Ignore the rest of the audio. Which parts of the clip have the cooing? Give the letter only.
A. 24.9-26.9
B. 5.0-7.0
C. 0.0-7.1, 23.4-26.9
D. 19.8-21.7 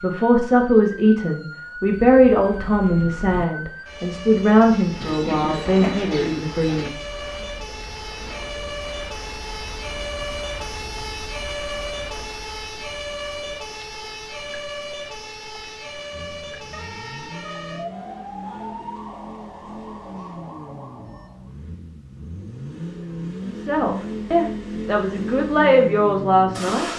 B.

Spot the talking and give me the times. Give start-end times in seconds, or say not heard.
0.0-7.1, 23.4-26.9.